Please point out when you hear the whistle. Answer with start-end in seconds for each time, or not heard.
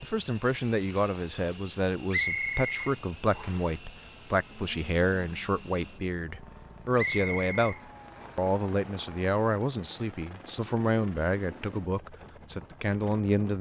2.1-3.7, 7.0-8.3.